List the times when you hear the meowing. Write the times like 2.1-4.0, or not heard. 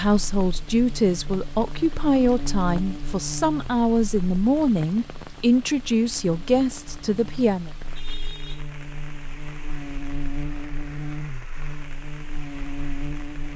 not heard.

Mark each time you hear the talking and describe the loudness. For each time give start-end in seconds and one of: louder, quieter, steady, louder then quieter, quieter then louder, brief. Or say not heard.
0.0-7.7 steady.